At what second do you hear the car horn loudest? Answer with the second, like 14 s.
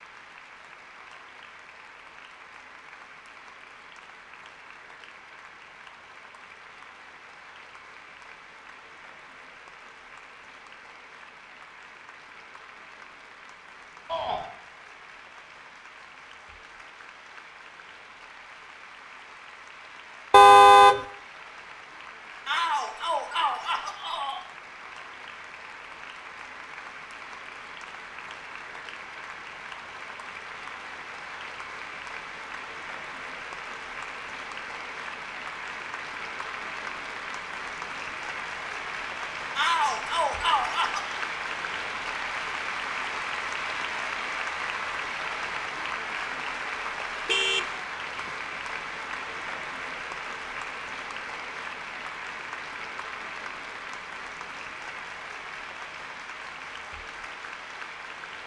21 s.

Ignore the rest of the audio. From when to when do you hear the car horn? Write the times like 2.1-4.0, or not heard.
20.3-21.0, 47.2-48.4.